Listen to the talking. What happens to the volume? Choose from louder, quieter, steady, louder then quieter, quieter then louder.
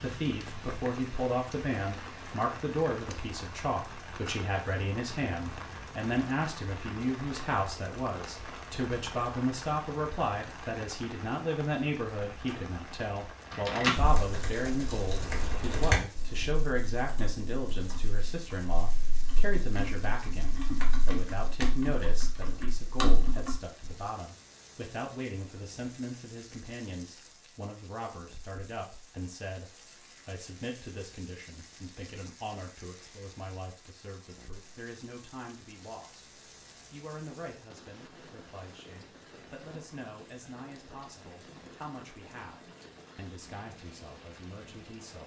quieter.